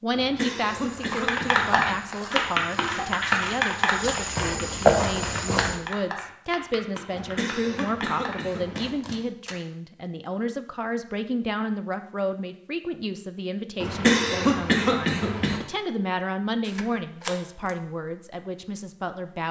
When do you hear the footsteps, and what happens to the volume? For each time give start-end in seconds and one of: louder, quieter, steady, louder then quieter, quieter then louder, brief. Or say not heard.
0.7-5.8 quieter then louder.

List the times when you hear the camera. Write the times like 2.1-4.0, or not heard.
2.3-3.6, 9.1-9.6, 16.6-17.7.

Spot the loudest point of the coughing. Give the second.
14 s.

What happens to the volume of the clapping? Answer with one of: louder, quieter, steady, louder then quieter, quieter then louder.
quieter.